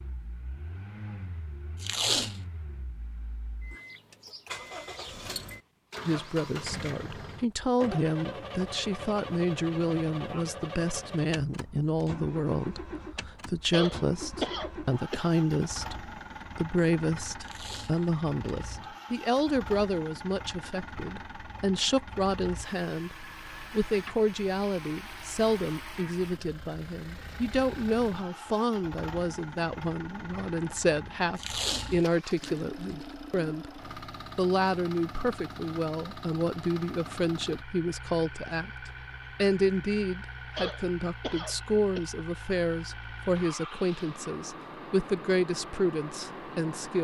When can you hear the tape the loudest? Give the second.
2 s.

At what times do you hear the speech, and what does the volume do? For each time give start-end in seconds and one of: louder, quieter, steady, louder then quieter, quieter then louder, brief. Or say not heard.
6.0-46.9 steady.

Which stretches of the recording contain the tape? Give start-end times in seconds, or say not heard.
1.8-2.4, 17.4-18.6, 31.4-33.0.